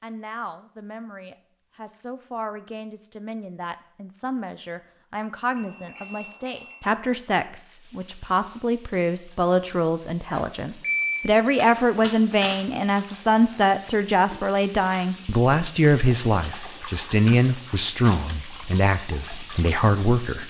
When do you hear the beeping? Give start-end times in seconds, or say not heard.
5.5-6.8, 10.8-12.6.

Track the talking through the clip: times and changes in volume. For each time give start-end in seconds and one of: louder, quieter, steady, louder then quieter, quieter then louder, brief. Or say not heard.
0.0-20.4 louder.